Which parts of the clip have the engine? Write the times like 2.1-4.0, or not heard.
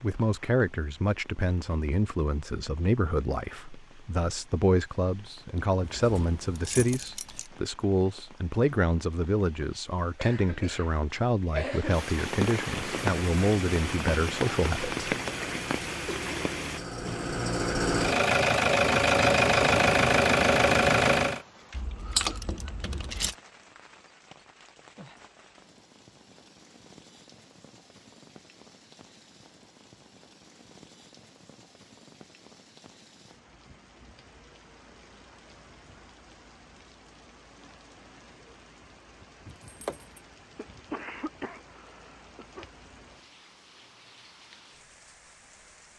12.8-21.4.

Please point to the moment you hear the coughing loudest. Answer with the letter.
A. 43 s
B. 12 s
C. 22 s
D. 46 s
B.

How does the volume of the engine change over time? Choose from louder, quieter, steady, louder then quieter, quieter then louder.
louder.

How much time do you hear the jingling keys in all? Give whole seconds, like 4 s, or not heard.
4 s.